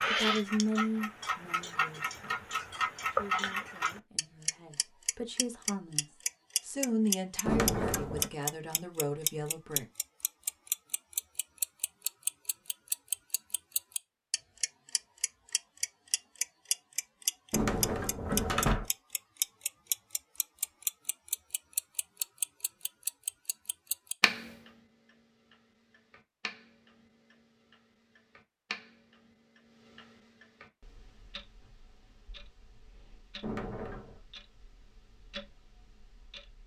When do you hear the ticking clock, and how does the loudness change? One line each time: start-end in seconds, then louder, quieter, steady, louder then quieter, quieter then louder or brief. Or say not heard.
0.0-36.6 quieter.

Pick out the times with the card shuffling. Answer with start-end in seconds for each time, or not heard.
not heard.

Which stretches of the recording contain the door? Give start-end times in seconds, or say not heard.
7.5-8.3, 17.5-18.9, 33.4-34.2.